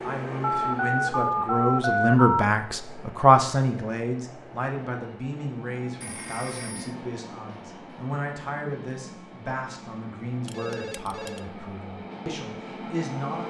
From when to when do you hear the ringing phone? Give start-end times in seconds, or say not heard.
0.4-2.5, 6.0-7.0, 10.4-11.4.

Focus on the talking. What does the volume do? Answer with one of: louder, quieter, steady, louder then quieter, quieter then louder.
quieter.